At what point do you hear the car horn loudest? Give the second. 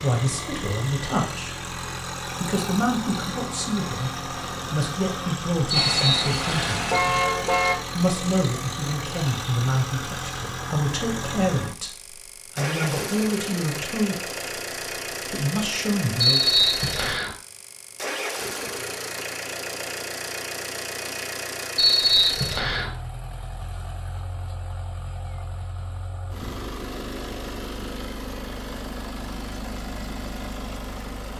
7 s.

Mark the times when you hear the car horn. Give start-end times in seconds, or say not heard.
5.7-7.8.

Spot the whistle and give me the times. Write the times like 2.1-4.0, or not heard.
5.7-6.8, 16.2-17.3, 21.8-22.9.